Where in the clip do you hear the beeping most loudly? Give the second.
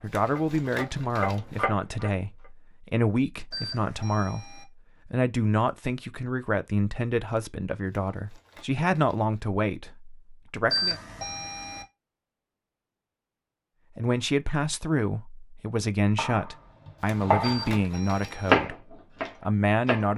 11 s.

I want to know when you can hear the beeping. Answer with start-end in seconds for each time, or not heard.
3.5-4.7, 10.7-11.8, 17.4-18.6.